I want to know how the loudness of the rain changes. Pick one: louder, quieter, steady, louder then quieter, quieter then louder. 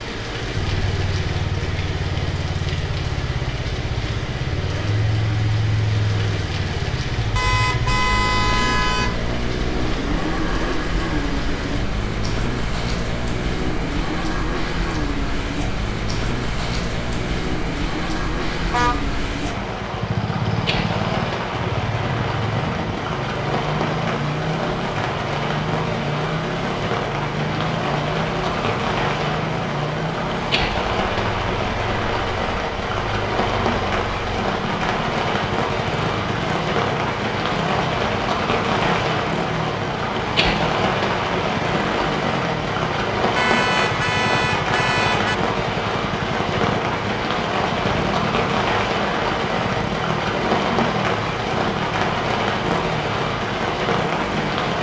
louder.